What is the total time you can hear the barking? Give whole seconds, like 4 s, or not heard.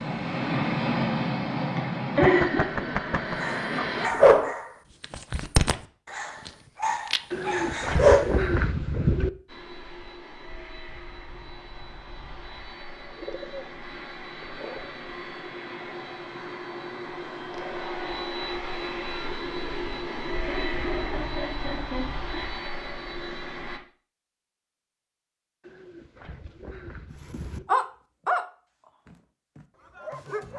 8 s.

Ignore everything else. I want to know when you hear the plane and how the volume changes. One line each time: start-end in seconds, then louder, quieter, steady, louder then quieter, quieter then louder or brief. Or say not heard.
0.0-4.1 quieter
9.4-23.8 louder.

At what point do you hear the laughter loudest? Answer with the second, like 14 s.
2 s.